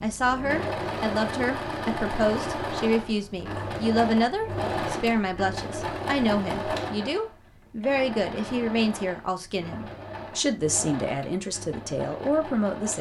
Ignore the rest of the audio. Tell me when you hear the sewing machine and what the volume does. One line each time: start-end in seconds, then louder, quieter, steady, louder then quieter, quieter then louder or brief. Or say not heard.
0.0-12.9 quieter.